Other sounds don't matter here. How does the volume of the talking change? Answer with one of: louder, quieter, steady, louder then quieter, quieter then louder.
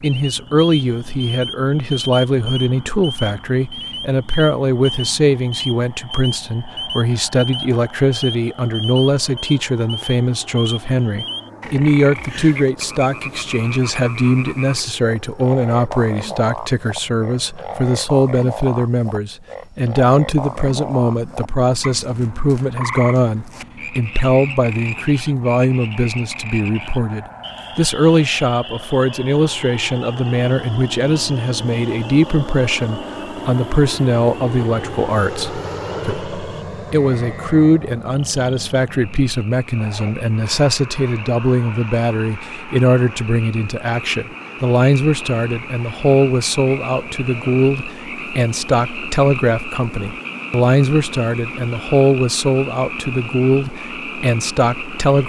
steady.